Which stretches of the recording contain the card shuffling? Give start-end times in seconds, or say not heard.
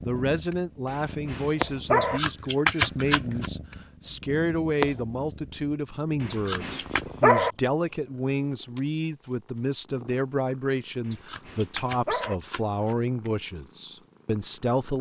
2.0-3.5, 6.3-7.0, 11.1-12.9.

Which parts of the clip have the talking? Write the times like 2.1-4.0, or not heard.
0.0-14.9.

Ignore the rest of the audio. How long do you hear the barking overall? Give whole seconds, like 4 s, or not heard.
4 s.